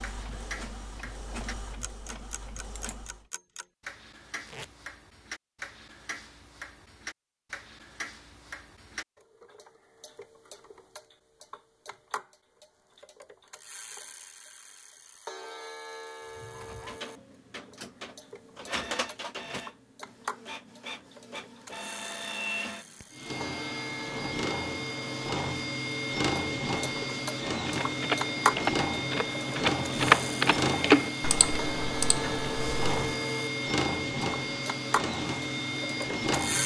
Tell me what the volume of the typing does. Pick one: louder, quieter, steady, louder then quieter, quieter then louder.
louder then quieter.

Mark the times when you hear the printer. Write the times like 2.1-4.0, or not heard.
0.0-3.2, 16.2-36.6.